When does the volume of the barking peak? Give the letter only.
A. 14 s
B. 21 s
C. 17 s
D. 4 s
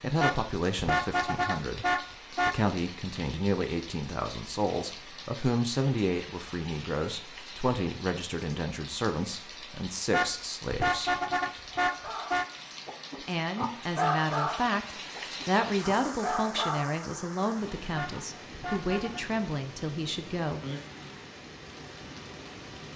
A.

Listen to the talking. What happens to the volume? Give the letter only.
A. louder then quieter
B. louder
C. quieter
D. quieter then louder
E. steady
E.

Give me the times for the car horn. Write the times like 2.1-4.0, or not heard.
0.2-2.5, 10.1-12.4, 17.9-19.2.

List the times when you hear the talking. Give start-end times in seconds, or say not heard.
0.0-11.2, 13.2-20.6.